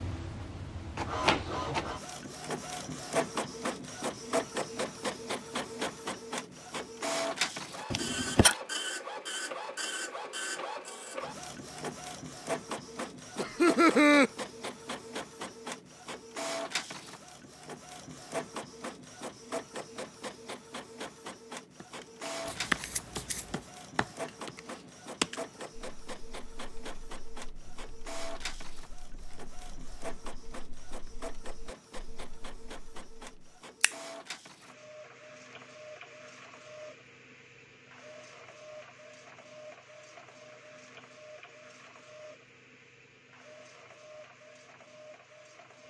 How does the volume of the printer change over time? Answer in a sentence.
The volume of the printer goes down.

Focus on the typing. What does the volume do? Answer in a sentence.
The volume of the typing goes down.